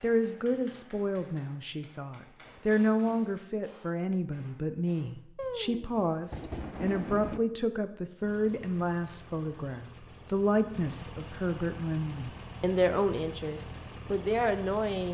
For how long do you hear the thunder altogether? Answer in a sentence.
The thunder can be heard for 2 seconds in total.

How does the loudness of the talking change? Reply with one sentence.
The volume of the talking stays about the same.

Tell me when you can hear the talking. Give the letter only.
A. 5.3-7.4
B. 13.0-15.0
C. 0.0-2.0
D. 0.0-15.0
D.